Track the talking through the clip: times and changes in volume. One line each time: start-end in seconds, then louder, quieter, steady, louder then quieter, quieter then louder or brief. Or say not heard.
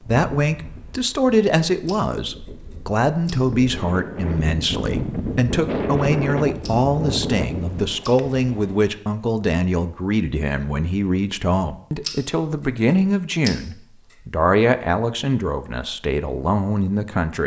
0.1-17.4 steady.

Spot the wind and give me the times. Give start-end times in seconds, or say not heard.
0.0-8.9.